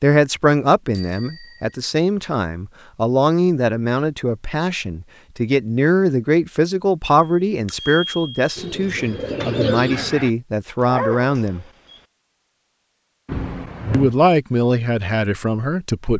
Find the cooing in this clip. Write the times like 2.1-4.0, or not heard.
8.6-10.3.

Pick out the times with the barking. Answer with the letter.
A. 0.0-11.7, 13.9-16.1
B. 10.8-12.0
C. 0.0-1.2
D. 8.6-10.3
B.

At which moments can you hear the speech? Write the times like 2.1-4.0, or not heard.
0.0-11.7, 13.9-16.1.